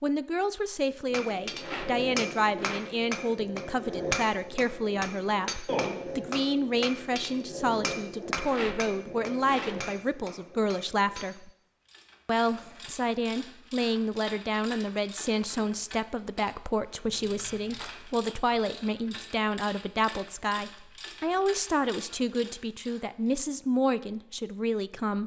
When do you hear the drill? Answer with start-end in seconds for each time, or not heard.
not heard.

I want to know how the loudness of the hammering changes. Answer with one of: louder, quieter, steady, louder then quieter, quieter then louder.
quieter.